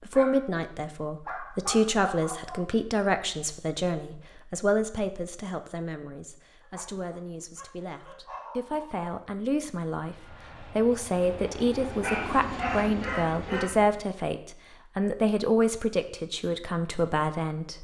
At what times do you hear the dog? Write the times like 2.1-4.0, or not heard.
0.1-2.6, 6.6-9.1, 12.0-13.7.